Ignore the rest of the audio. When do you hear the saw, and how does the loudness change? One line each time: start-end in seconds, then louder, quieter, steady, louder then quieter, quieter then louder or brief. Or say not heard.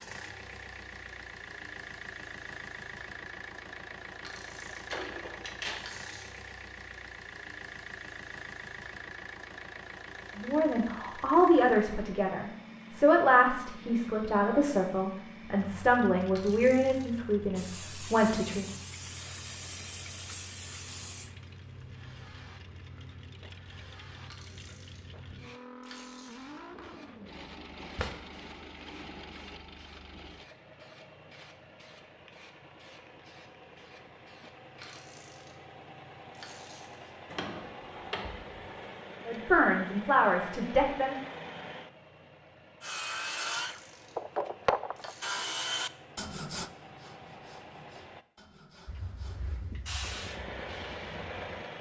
42.8-49.6 quieter.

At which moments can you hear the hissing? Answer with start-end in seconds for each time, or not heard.
17.6-35.0, 48.9-51.7.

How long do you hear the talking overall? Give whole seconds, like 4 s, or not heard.
10 s.